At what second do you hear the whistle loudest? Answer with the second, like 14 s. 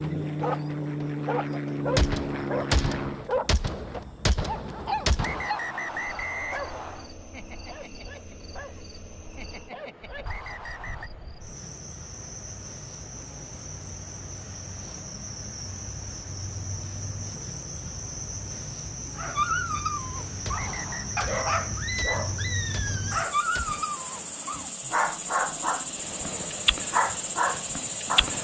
6 s.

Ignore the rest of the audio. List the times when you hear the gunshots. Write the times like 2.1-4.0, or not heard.
1.9-5.5, 20.4-23.9.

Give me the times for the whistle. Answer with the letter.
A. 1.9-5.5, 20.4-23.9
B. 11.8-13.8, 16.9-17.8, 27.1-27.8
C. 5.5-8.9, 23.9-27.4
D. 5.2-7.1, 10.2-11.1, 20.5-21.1
D.